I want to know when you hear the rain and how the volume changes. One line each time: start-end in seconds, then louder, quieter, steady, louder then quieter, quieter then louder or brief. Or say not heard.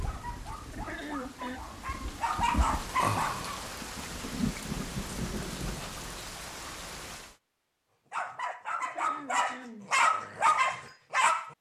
0.0-7.3 louder then quieter.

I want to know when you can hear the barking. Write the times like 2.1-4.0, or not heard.
0.0-3.6, 8.1-11.5.